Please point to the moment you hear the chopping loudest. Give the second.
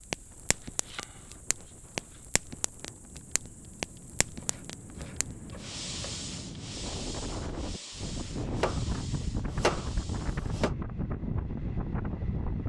10 s.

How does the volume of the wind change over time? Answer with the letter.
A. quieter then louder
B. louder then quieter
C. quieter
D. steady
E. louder
E.